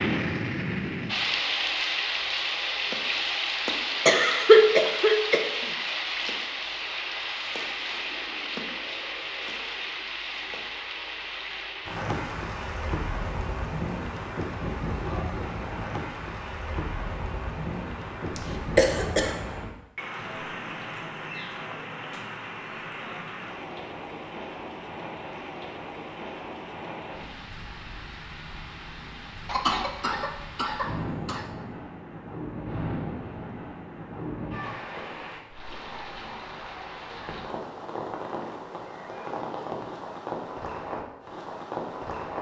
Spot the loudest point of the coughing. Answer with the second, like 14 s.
5 s.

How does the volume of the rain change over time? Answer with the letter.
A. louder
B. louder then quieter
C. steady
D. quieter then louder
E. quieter
E.